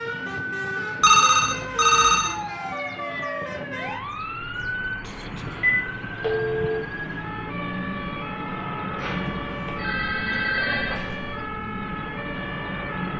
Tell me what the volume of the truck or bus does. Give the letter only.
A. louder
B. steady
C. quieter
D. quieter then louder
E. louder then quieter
B.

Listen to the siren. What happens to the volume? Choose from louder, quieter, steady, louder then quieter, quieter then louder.
steady.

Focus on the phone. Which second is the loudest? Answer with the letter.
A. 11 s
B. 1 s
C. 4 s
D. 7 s
B.